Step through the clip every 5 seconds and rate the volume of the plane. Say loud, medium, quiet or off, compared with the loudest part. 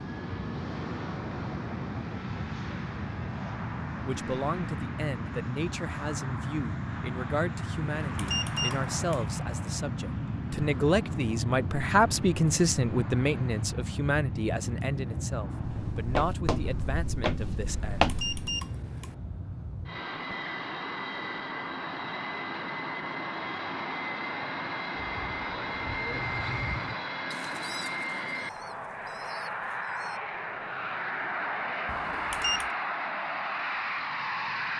loud, loud, loud, medium, loud, loud, loud.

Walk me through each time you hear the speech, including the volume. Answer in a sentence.
You can hear the speech from 4.0 to 18.1 s, getting louder then quieter.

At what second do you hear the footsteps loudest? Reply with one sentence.
The volume of the footsteps peaks at 18 seconds.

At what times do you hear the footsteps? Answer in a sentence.
You can hear the footsteps from 15.6 to 18.5 s.